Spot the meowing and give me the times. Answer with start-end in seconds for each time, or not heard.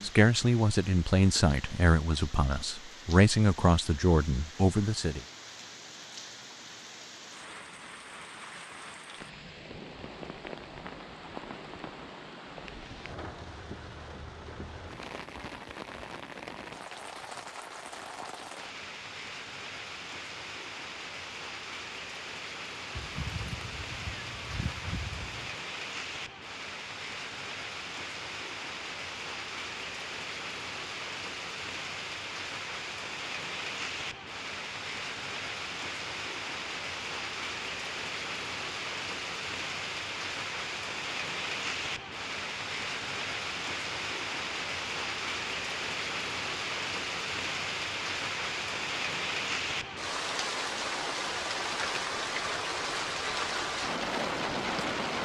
22.9-25.6.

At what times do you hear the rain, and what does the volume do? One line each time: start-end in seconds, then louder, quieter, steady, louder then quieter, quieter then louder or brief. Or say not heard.
0.0-55.1 louder.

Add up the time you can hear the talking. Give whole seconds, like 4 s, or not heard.
5 s.